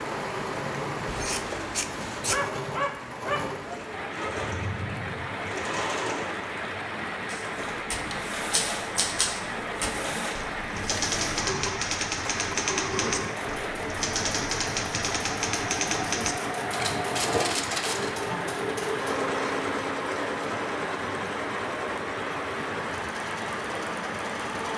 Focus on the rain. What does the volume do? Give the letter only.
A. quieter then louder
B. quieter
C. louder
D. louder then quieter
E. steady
E.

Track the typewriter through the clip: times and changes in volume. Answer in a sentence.
You can hear the typewriter from 7.2 to 18.1 s, at a steady volume.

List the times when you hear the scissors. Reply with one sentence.
You can hear the scissors from 1.1 to 2.5 s.